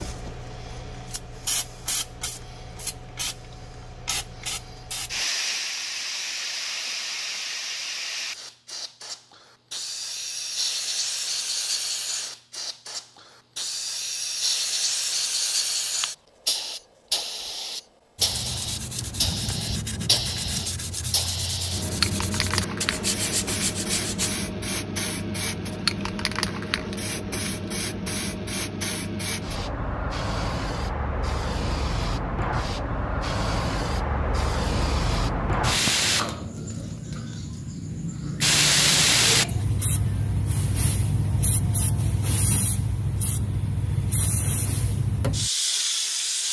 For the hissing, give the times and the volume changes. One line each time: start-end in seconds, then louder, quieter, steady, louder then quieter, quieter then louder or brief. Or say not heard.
0.0-46.4 louder.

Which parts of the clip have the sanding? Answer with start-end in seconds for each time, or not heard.
18.1-24.4.